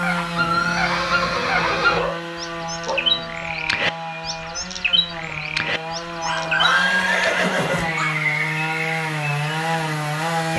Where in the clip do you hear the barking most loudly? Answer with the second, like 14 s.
7 s.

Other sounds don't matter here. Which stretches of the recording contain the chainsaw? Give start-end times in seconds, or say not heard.
0.0-10.5.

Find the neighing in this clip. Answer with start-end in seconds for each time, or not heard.
0.3-2.0, 6.5-7.9.